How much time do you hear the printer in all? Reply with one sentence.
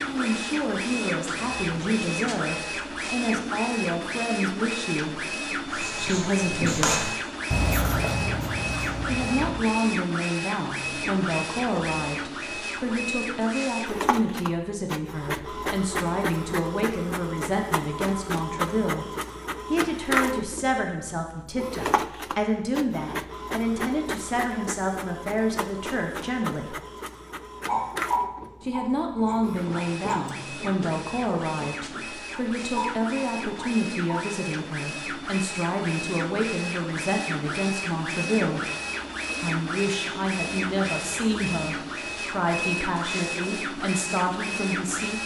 The printer can be heard for 45 seconds in total.